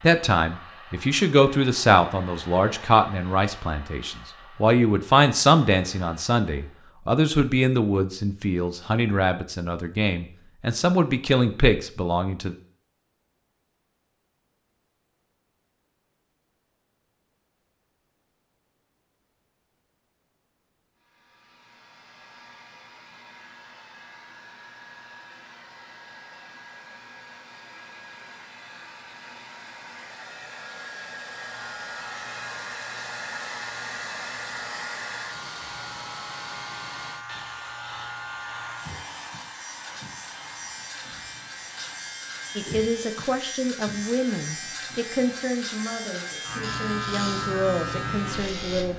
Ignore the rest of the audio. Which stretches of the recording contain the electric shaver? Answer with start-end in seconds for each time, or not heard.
31.4-48.9.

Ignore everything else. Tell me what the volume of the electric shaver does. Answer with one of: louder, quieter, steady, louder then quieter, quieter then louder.
louder.